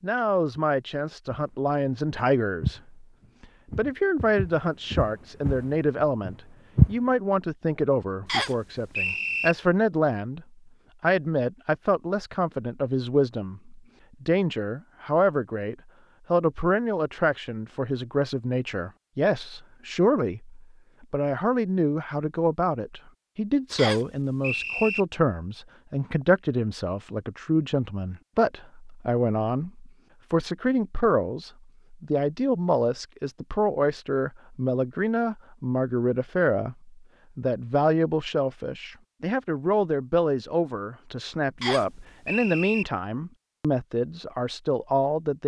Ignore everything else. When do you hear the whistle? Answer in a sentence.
The whistle can be heard from 8.2 to 9.6 s, from 23.8 to 25.0 s and from 41.6 to 42.9 s.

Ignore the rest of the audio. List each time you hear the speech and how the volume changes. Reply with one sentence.
The speech can be heard from 0.0 to 45.4 s, at a steady volume.